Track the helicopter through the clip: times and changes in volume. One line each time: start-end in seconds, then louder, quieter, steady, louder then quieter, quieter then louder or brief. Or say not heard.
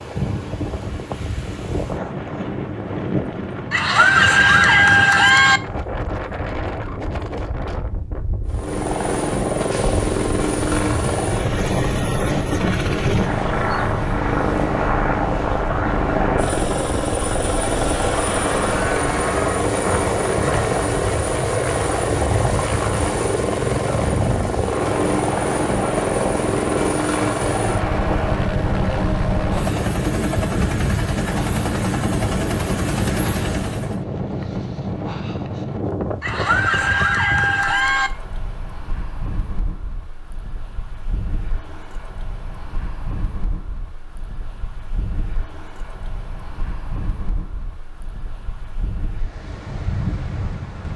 8.4-34.0 steady.